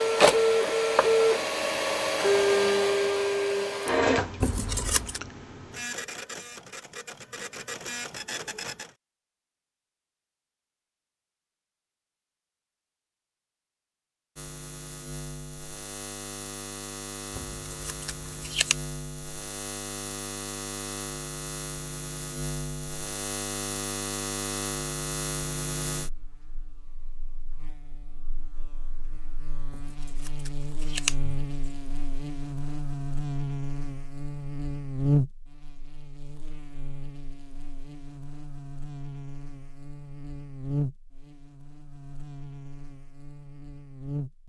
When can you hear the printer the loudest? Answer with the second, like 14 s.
1 s.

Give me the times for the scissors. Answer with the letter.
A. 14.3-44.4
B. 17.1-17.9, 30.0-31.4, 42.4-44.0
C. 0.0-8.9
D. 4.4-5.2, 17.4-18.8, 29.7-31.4
D.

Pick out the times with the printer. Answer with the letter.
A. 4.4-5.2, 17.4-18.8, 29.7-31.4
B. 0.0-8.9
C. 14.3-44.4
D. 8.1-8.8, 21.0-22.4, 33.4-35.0
B.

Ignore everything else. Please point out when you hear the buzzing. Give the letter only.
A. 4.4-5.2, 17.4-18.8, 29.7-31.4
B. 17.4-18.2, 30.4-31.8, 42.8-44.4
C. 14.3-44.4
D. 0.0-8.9
C.